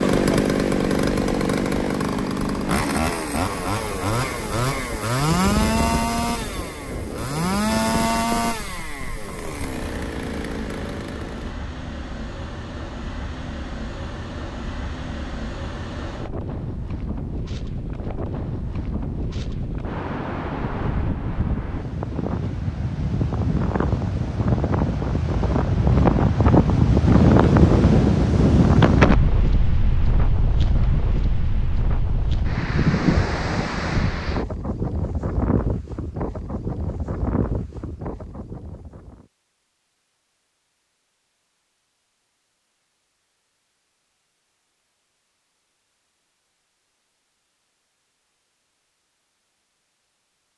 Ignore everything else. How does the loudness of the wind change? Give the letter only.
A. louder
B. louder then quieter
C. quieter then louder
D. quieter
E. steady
B.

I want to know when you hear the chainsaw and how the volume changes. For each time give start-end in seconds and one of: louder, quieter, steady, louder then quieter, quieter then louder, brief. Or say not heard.
0.0-11.5 quieter.